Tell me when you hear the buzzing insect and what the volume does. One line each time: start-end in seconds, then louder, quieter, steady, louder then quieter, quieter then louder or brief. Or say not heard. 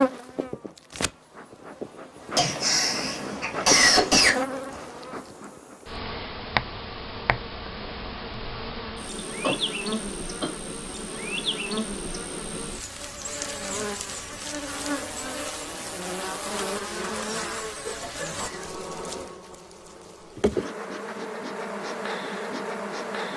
0.0-23.3 steady.